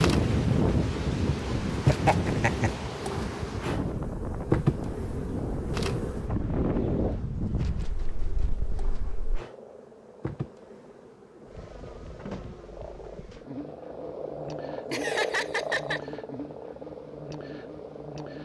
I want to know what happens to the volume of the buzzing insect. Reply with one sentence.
The volume of the buzzing insect goes down.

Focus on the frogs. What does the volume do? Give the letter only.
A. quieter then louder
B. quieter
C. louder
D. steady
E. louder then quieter
E.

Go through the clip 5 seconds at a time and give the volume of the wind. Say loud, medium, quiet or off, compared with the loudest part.
loud, loud, off, off.